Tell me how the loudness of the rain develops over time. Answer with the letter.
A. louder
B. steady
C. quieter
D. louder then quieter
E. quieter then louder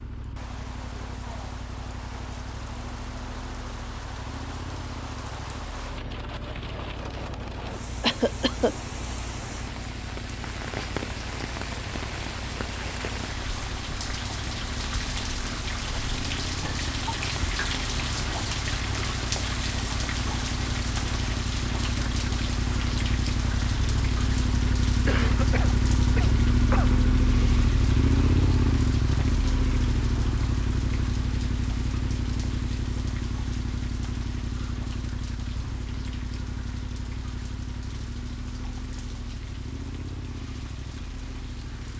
D.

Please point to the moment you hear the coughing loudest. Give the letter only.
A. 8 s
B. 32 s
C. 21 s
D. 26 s
A.